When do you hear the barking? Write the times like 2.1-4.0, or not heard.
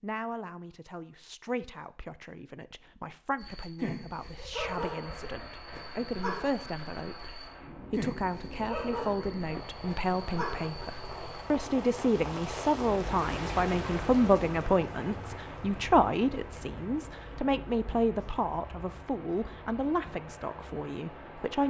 3.4-11.4.